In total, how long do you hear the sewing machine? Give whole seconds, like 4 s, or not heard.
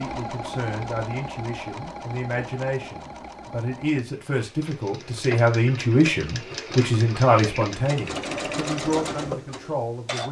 10 s.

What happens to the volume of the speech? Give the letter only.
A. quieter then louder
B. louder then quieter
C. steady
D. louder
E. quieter
B.